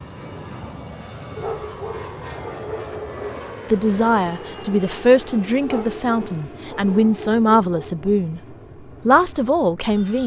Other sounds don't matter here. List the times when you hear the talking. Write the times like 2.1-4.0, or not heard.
3.7-8.4, 9.1-10.2.